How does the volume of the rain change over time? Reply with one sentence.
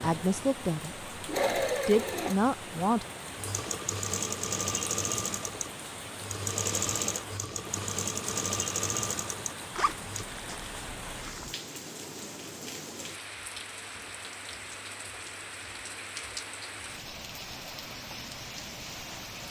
The loudness of the rain stays about the same.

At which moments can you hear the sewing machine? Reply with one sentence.
The sewing machine can be heard from 0.2 to 10.2 s.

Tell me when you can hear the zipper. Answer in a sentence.
The zipper can be heard from 9.8 to 11.6 s.